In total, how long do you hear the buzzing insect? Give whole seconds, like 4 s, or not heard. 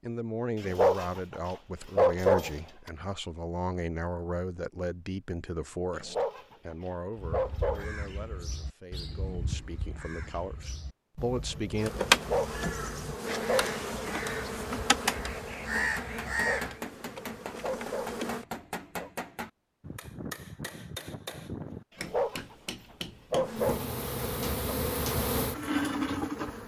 10 s.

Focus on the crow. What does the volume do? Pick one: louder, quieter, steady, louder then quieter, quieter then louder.
louder.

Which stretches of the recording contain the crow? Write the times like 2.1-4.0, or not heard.
7.2-16.8.